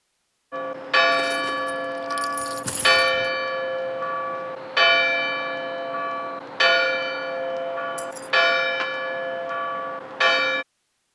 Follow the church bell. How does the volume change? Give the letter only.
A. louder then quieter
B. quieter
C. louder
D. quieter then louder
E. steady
E.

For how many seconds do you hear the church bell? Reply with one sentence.
You can hear the church bell for 10 seconds altogether.